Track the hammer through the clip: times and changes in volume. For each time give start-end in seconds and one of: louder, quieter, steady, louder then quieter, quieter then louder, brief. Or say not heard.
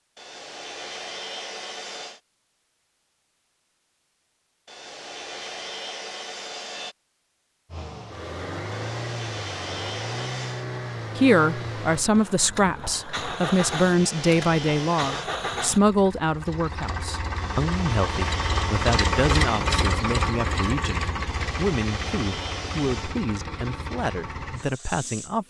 not heard.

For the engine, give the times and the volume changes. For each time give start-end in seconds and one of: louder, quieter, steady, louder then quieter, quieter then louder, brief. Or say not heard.
7.7-25.4 louder then quieter.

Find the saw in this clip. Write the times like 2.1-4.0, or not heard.
0.1-2.2, 4.7-7.0, 8.7-10.7, 13.7-15.3, 17.4-19.6, 21.2-23.2.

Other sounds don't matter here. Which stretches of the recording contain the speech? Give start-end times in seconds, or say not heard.
11.2-25.4.